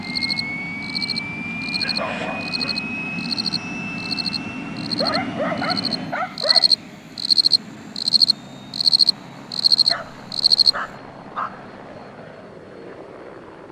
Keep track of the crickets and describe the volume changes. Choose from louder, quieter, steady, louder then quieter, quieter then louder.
louder.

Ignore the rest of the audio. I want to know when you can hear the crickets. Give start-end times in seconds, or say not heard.
0.0-10.7.